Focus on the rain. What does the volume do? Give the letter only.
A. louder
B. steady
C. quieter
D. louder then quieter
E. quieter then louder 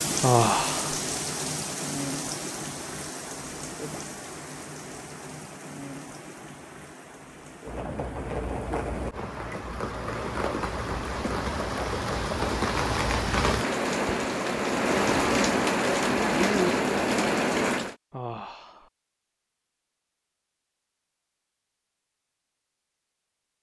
E.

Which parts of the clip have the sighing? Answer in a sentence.
The sighing can be heard from 0.2 to 1.0 s and from 18.1 to 18.9 s.